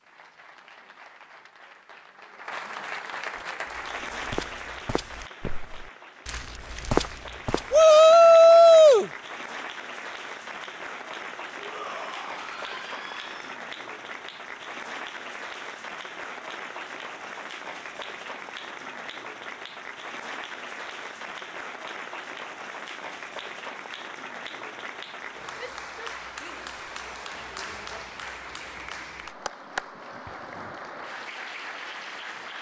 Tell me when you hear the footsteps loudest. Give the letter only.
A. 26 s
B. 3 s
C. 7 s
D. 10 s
C.